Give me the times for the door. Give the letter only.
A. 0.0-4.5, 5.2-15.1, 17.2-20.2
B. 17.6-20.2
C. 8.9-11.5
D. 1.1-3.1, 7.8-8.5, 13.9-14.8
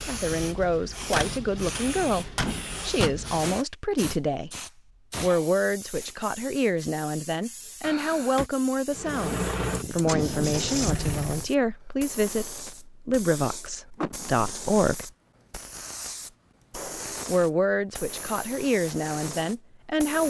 D.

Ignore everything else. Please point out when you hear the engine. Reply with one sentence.
The engine can be heard from 8.9 to 11.5 s.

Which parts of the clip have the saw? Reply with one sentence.
The saw can't be heard in this clip.